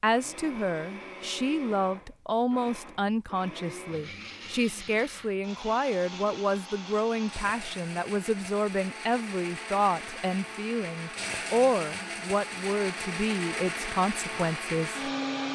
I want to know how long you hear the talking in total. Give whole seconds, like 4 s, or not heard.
15 s.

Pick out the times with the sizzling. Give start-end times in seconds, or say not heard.
not heard.